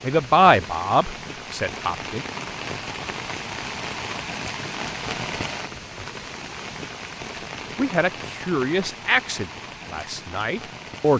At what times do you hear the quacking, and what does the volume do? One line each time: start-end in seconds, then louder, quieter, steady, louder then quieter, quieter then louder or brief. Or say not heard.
not heard.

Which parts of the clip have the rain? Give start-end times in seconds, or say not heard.
0.0-11.1.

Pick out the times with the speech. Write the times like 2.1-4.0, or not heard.
0.0-2.2, 7.8-11.1.